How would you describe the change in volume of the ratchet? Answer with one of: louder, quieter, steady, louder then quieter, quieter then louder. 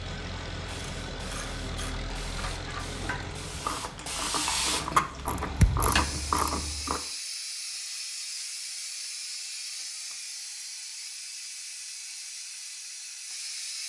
louder.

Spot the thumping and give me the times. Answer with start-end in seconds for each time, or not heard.
5.6-6.1.